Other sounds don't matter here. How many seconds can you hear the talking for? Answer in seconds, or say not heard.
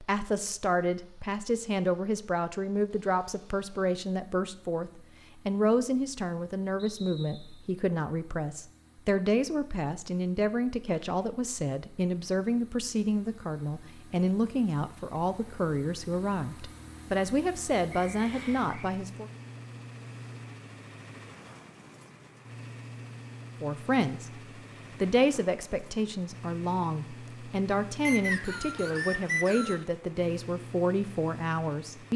27 s.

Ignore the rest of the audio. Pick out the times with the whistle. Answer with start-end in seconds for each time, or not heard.
6.8-7.7, 17.9-18.9, 28.1-29.9.